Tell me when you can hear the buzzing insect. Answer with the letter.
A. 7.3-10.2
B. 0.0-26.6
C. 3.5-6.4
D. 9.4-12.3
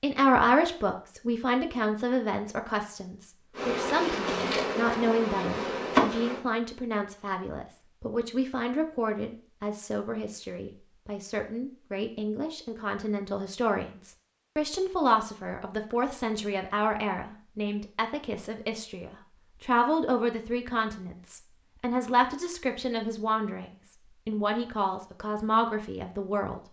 C.